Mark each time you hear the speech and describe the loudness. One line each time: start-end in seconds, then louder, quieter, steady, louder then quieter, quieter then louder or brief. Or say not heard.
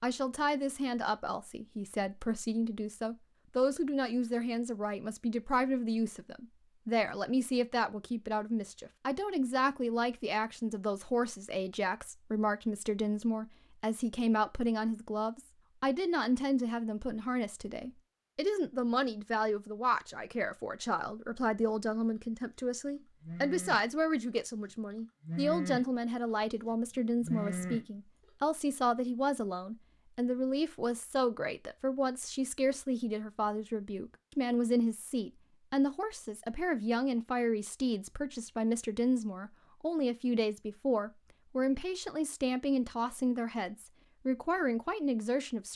0.0-45.7 steady.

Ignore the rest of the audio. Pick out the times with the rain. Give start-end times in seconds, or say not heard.
not heard.